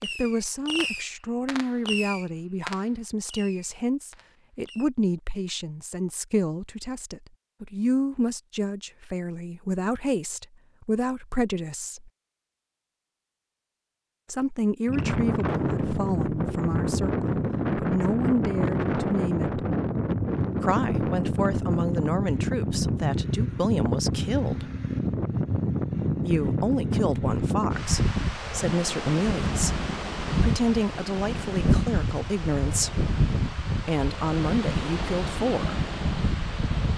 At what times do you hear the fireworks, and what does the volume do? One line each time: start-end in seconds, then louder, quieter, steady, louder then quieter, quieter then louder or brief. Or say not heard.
0.0-4.9 quieter.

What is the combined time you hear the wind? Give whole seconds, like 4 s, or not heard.
22 s.